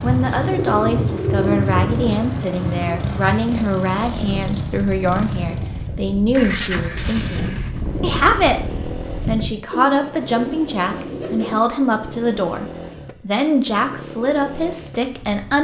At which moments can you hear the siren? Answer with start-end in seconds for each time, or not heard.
not heard.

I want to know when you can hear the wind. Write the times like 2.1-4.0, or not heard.
0.0-9.6.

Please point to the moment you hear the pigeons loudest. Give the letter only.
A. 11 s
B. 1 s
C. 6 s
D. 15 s
B.